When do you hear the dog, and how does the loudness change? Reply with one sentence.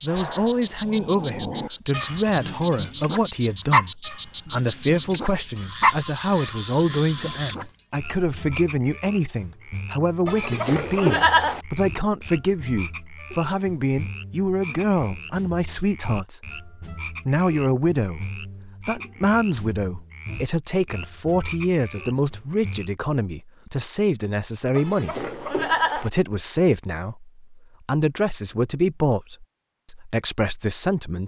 You can hear the dog from 0.1 to 7.7 s, getting louder then quieter.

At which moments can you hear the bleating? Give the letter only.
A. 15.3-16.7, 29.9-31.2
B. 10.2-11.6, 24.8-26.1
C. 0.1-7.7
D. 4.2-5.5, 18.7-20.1
B.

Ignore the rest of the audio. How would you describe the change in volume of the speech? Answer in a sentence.
The loudness of the speech stays about the same.